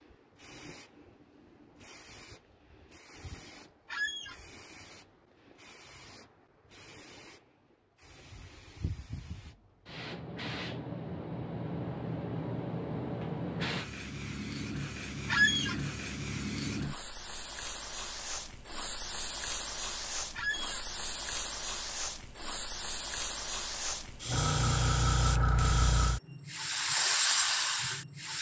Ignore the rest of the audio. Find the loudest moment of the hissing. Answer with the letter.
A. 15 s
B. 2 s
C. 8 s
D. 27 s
D.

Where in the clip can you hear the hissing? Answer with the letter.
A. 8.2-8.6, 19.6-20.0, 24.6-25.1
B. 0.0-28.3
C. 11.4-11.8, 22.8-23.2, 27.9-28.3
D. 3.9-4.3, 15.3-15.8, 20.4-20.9
B.